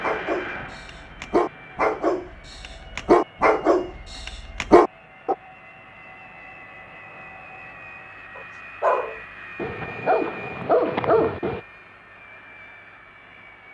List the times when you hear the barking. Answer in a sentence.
The barking can be heard from 0.0 to 5.3 s and from 8.3 to 11.6 s.